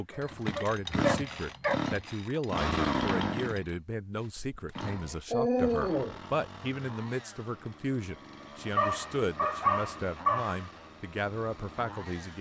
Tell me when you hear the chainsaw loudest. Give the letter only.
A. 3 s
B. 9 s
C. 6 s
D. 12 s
A.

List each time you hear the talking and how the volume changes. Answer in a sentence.
You can hear the talking from 0.0 to 12.3 s, at a steady volume.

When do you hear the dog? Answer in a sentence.
You can hear the dog from 0.1 to 1.8 s, from 4.3 to 6.2 s and from 8.8 to 10.6 s.